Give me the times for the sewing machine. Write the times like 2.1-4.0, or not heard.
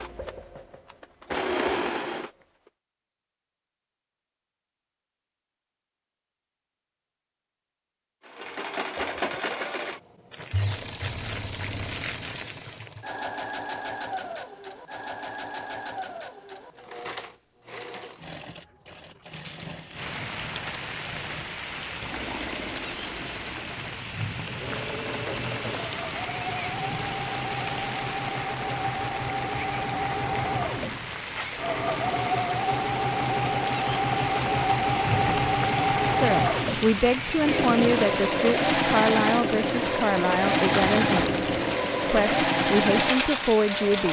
0.0-2.7, 8.2-44.0.